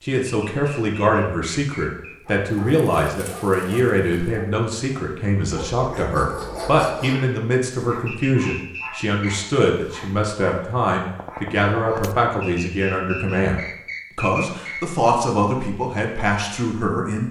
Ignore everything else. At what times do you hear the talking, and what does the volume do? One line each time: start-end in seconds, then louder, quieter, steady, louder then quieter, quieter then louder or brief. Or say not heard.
0.0-17.2 steady.